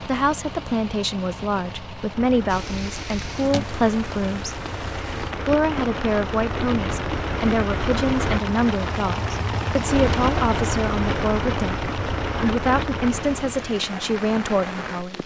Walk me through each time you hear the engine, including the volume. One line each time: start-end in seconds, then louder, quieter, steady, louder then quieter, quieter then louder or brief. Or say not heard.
0.0-13.8 louder.